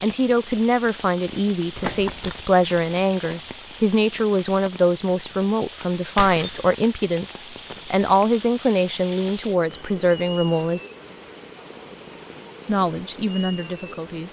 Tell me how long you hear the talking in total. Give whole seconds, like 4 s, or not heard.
12 s.